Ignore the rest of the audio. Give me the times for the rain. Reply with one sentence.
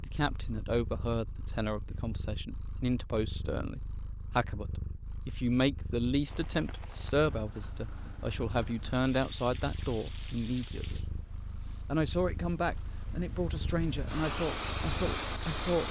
You can hear the rain from 6.2 to 15.8 s.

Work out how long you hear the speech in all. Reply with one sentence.
The speech can be heard for 15 seconds in total.